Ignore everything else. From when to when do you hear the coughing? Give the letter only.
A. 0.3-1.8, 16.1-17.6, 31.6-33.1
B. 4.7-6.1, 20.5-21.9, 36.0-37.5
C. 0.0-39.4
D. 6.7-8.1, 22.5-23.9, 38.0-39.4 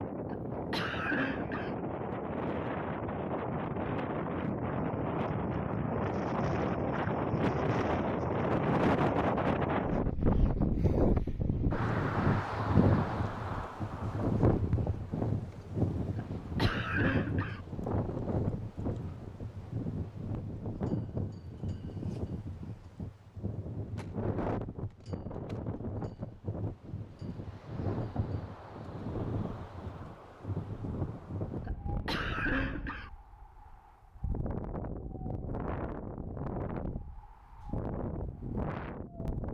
A.